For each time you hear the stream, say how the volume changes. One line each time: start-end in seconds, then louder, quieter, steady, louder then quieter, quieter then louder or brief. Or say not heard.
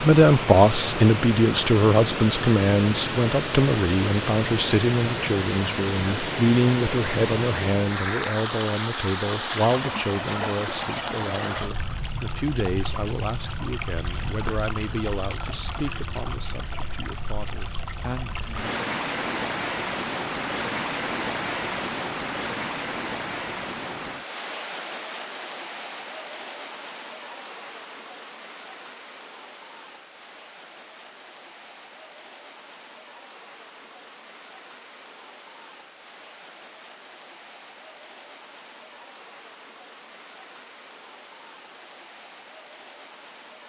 0.0-43.6 quieter.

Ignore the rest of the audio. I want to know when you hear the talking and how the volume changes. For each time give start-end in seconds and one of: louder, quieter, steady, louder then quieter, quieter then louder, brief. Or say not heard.
0.0-18.8 quieter.